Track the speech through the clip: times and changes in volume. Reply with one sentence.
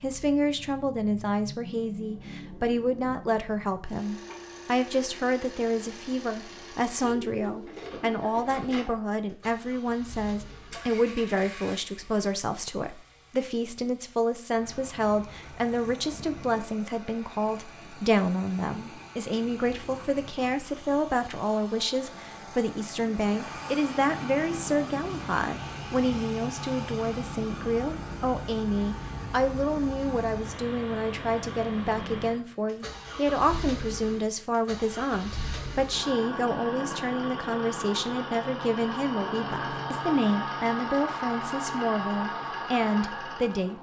You can hear the speech from 0.0 to 43.7 s, at a steady volume.